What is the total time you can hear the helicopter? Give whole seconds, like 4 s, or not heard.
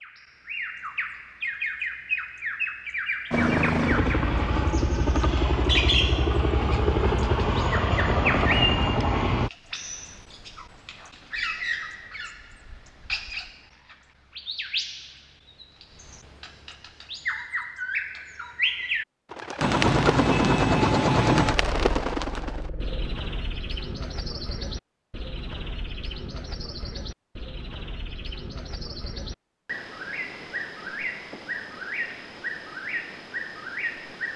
10 s.